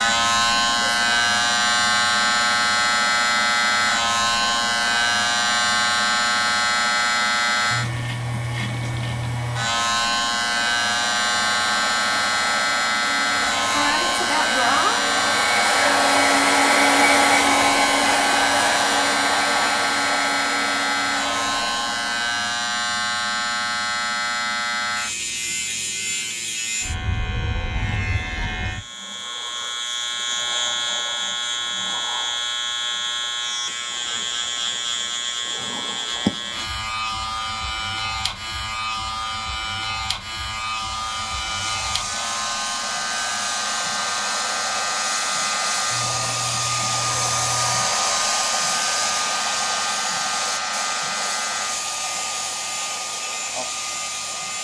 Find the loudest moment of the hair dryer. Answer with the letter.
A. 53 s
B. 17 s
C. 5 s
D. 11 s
B.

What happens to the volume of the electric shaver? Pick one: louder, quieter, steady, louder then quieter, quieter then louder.
quieter.